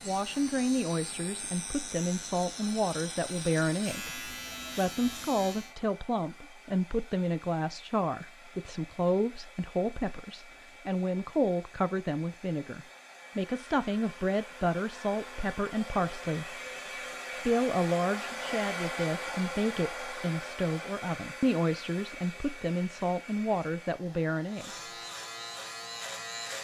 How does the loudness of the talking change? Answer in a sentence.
The loudness of the talking stays about the same.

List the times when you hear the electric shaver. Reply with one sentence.
The electric shaver can be heard from 0.0 to 5.8 s and from 24.4 to 26.5 s.